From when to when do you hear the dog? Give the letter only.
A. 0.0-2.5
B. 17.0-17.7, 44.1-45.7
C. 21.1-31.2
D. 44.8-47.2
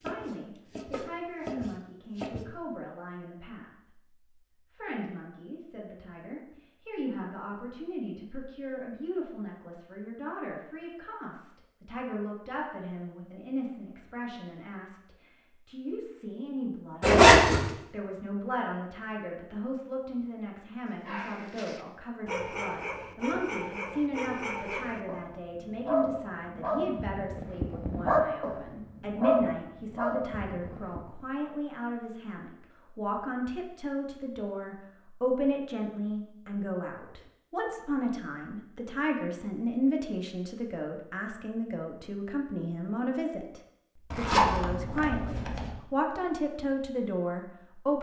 C.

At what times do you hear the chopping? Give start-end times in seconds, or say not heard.
0.0-2.5.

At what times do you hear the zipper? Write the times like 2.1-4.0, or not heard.
17.0-17.7, 44.1-45.7.